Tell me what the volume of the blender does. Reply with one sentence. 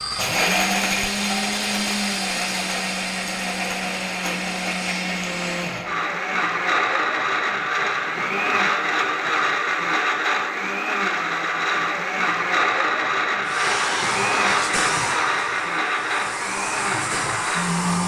The volume of the blender stays about the same.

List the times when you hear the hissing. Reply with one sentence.
The hissing can be heard from 0.0 to 5.7 s and from 13.4 to 18.0 s.